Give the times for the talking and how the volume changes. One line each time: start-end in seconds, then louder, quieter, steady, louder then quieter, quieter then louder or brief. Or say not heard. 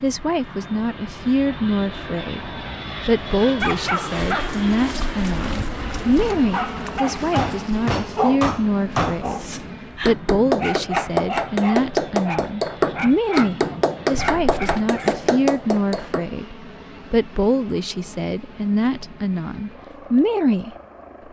0.0-20.8 steady.